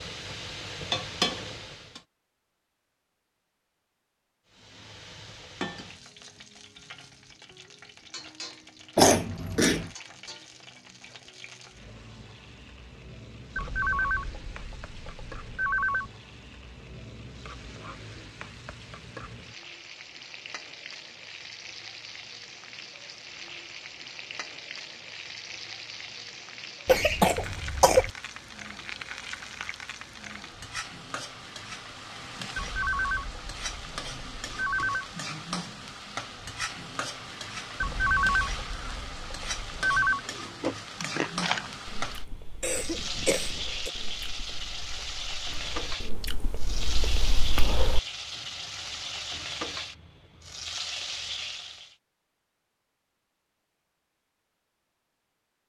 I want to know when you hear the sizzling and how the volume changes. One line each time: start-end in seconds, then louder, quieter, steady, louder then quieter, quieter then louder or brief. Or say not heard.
0.0-2.0 brief
4.5-52.0 louder.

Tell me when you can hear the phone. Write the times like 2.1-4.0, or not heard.
13.6-16.1, 32.5-35.0, 37.8-40.2.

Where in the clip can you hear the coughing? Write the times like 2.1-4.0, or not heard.
8.9-9.9, 26.9-28.1, 42.6-43.9.